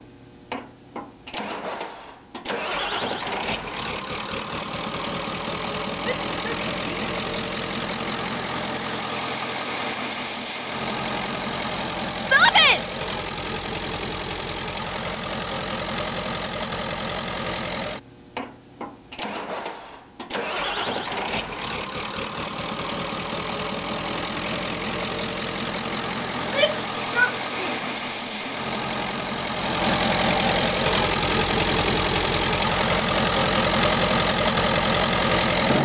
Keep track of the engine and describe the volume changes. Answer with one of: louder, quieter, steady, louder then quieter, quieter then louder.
louder.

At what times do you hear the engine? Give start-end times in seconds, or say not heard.
0.0-35.8.